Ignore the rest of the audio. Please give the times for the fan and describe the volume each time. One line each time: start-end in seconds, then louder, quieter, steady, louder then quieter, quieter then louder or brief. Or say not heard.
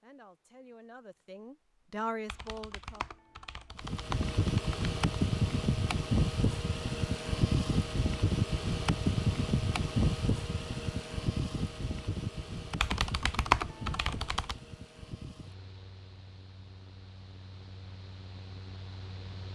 3.8-19.5 quieter.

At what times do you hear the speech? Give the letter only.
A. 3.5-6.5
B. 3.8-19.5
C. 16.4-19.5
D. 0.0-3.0
D.